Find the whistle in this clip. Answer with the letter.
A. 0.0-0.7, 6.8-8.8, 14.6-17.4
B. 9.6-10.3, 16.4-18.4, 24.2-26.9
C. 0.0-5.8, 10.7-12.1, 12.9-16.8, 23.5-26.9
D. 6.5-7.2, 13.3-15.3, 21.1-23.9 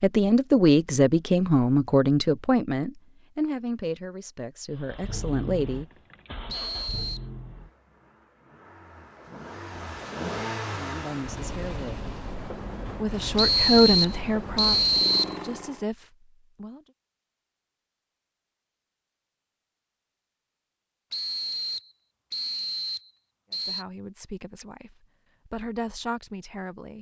D.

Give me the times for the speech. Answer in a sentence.
The speech can be heard from 0.0 to 5.8 s, from 10.7 to 12.1 s, from 12.9 to 16.8 s and from 23.5 to 26.9 s.